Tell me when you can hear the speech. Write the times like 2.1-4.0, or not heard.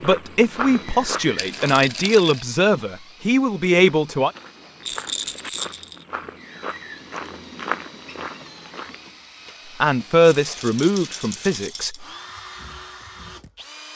0.0-4.3, 9.8-12.1.